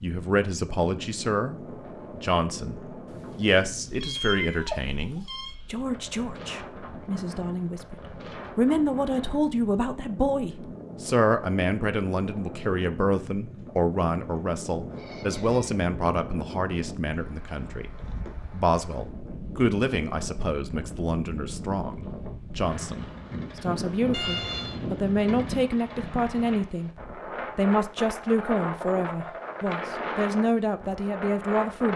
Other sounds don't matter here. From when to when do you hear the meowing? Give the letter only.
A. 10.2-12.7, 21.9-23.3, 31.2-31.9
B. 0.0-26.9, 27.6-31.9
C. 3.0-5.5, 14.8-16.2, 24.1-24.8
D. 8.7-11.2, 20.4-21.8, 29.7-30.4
C.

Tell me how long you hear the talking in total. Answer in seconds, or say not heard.
31 s.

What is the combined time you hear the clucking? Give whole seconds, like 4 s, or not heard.
not heard.